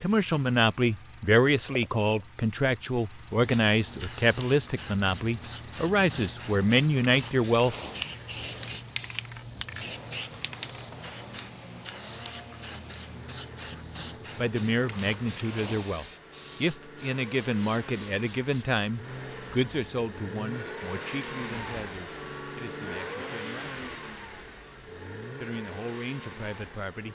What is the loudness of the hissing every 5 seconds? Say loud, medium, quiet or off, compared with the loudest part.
loud, loud, loud, medium, off, off.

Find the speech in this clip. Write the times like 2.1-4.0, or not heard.
0.0-7.8, 14.3-23.8, 25.4-27.0.